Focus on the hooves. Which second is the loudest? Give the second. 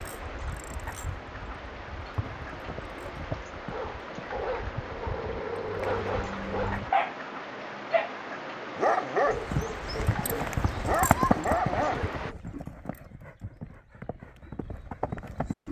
11 s.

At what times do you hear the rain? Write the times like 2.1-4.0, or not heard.
0.0-12.3.